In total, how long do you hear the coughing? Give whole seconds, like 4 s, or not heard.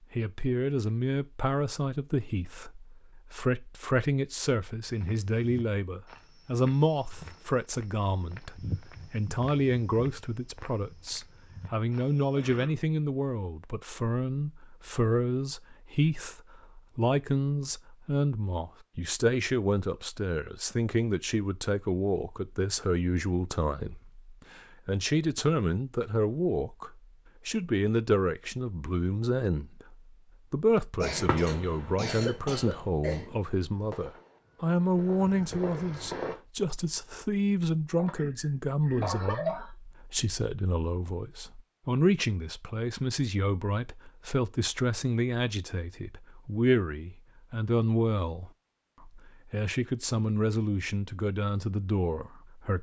5 s.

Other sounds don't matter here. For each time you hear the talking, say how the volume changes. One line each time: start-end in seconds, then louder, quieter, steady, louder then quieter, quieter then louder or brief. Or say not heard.
0.1-52.7 steady.